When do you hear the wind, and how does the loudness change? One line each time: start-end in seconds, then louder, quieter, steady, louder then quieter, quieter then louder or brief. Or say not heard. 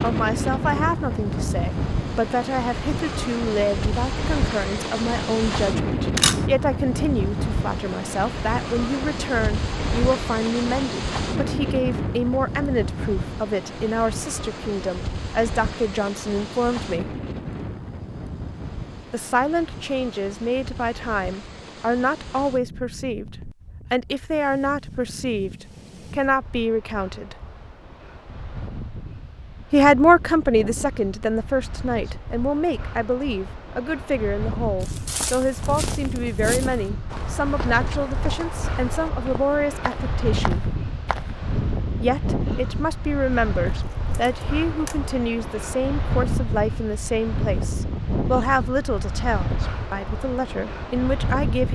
0.0-51.6 quieter then louder.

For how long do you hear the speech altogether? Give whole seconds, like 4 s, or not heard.
46 s.